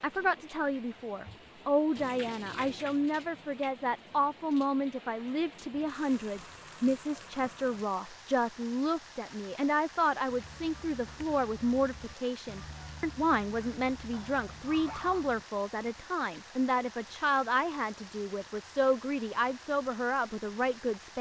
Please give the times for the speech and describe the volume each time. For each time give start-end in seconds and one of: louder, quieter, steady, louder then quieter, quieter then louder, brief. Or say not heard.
0.0-21.1 steady.